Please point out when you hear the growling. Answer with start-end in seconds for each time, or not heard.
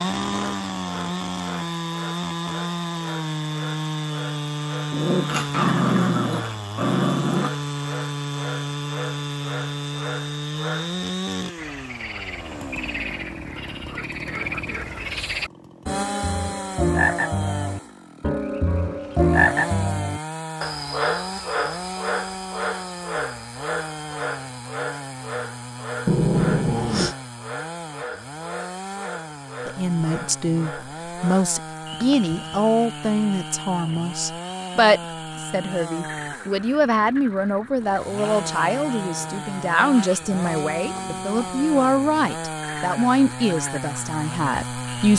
4.9-7.5, 26.1-27.1.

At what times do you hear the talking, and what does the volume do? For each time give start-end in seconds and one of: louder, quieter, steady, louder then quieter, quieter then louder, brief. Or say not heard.
29.6-45.1 steady.